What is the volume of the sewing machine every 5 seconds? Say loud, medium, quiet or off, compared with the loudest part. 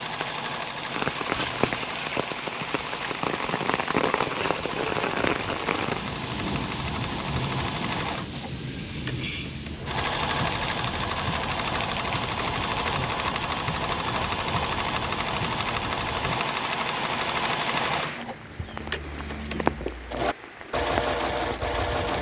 medium, medium, loud, loud, loud.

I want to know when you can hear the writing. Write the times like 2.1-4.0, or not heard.
1.3-1.9, 12.1-12.7.